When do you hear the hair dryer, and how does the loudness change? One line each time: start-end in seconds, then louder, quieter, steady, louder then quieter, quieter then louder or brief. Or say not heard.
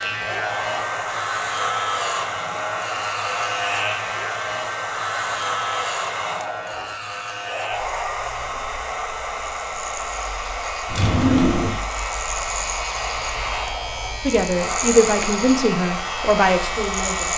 0.0-17.3 steady.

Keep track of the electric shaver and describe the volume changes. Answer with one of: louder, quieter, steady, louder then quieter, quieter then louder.
quieter then louder.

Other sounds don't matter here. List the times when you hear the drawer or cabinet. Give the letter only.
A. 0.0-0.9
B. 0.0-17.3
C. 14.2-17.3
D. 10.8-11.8
D.